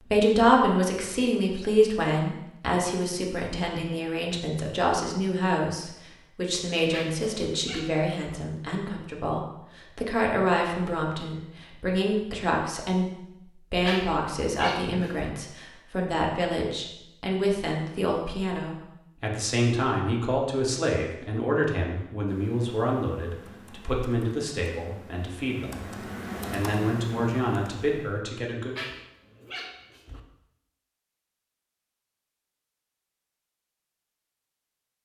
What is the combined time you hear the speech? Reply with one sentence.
You can hear the speech for 29 seconds altogether.